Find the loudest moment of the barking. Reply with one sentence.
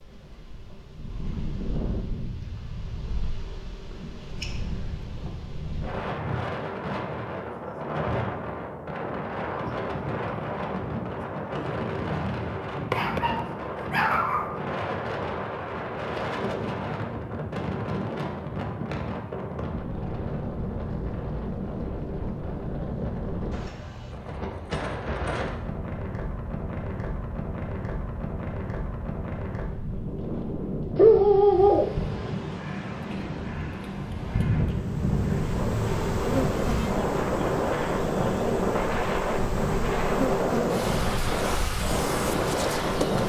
The loudest moment of the barking is at 31 seconds.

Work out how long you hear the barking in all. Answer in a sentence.
You can hear the barking for 3 seconds altogether.